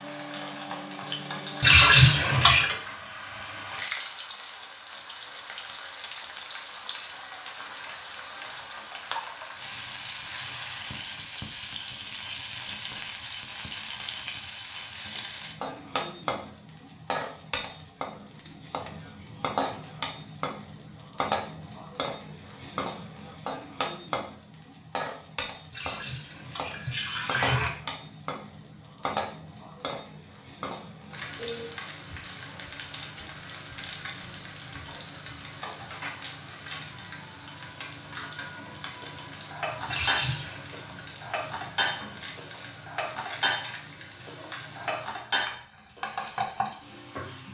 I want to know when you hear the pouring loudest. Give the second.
2 s.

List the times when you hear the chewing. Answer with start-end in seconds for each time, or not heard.
not heard.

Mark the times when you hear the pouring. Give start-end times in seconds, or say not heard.
1.6-2.6, 25.7-27.7, 39.9-40.7.